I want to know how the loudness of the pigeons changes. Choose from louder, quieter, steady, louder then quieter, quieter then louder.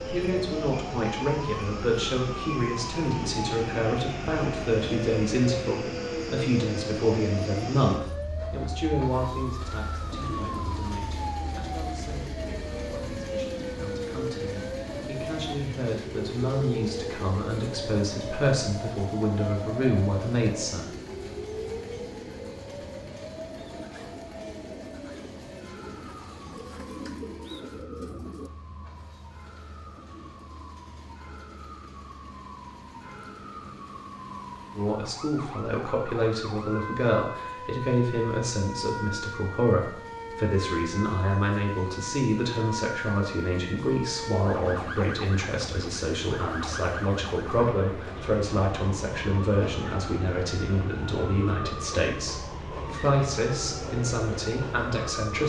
louder.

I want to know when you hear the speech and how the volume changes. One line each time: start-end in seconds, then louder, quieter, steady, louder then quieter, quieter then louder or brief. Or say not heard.
0.1-20.9 quieter then louder
34.8-55.4 steady.